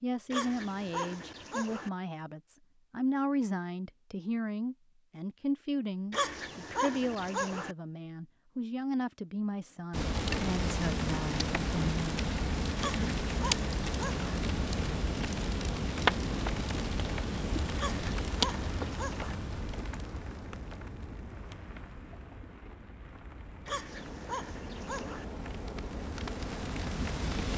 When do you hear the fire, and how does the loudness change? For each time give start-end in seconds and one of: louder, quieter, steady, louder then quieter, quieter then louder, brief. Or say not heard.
9.9-27.5 quieter then louder.